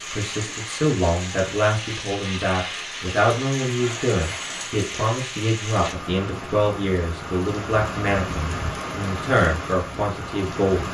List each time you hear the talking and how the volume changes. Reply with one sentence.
You can hear the talking from 0.1 to 10.8 s, at a steady volume.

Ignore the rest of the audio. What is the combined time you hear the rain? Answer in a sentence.
You can hear the rain for 11 seconds altogether.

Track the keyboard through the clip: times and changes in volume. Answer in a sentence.
You can't hear the keyboard here.